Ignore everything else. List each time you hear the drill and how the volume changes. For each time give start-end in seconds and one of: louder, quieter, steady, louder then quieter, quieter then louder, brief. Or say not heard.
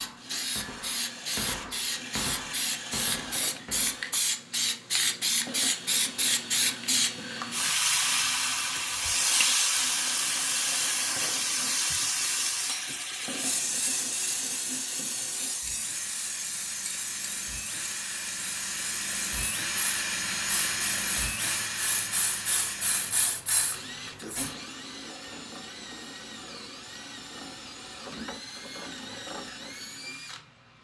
0.0-30.8 louder then quieter.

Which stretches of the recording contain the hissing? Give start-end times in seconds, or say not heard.
0.0-24.6.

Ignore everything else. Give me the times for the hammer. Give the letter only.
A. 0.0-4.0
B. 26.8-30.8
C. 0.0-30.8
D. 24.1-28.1
A.